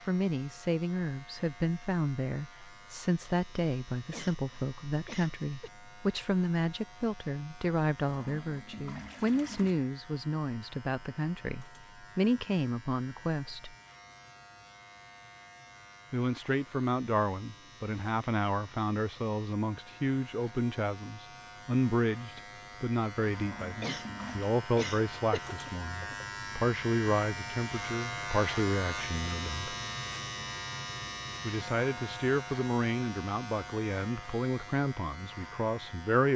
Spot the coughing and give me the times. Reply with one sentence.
The coughing can be heard from 4.1 to 5.7 s and from 23.8 to 26.1 s.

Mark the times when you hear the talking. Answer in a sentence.
You can hear the talking from 0.1 to 13.8 s, from 16.1 to 29.8 s and from 31.4 to 36.3 s.